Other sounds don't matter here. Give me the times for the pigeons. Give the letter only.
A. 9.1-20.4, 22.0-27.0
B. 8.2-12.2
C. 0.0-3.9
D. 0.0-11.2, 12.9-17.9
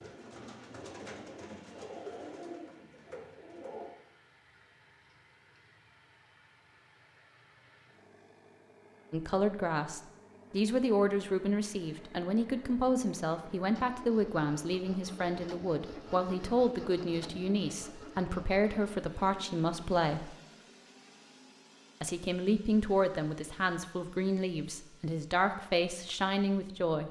C.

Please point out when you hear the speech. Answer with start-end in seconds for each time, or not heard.
9.1-20.4, 22.0-27.0.